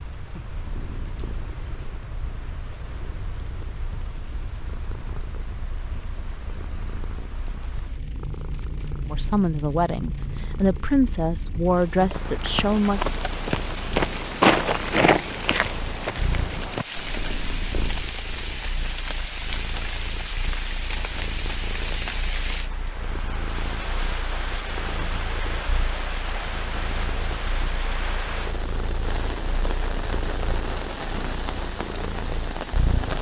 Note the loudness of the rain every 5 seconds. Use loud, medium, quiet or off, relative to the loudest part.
medium, medium, medium, loud, loud, loud, loud.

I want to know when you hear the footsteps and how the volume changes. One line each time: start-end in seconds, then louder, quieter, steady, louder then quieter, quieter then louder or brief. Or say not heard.
12.0-18.1 louder then quieter.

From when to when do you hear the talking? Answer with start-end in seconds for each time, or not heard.
9.1-13.0.